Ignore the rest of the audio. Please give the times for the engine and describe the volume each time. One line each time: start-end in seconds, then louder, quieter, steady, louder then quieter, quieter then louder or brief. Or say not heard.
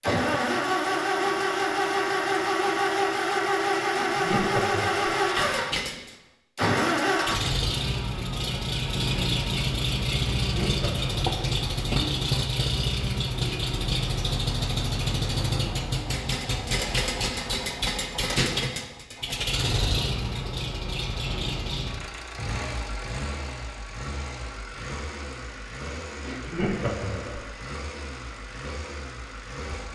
0.0-29.9 quieter.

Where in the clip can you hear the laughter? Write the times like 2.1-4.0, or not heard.
4.0-5.2, 10.3-11.3, 26.2-27.5.